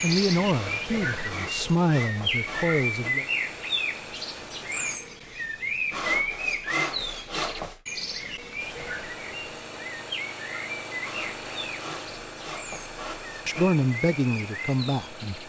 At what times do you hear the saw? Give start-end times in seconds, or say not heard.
0.5-3.1, 5.9-7.8, 11.0-13.8.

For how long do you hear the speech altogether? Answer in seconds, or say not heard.
5 s.